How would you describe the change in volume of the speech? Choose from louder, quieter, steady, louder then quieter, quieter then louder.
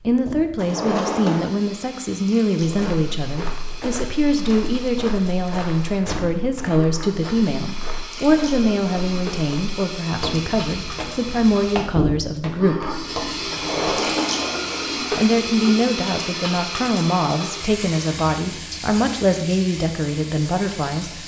steady.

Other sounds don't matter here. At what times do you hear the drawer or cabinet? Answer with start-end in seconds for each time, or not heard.
0.6-1.6, 13.5-14.9.